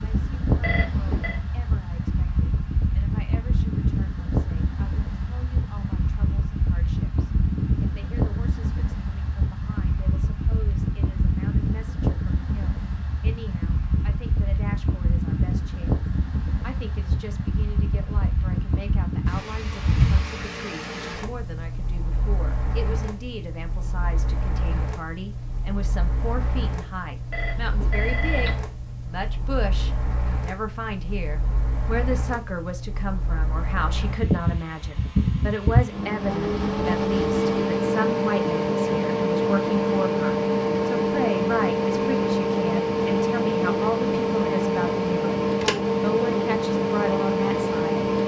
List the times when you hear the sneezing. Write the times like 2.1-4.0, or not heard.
not heard.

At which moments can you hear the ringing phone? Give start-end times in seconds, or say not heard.
0.6-1.4, 27.3-28.6.